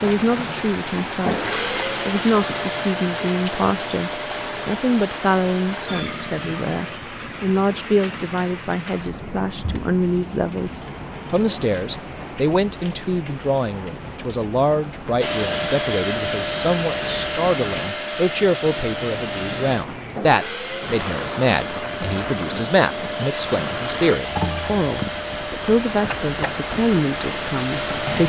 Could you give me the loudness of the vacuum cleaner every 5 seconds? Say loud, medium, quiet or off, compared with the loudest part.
loud, medium, off, loud, loud, loud.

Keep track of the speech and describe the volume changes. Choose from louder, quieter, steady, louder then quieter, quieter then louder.
steady.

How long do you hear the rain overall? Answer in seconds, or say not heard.
28 s.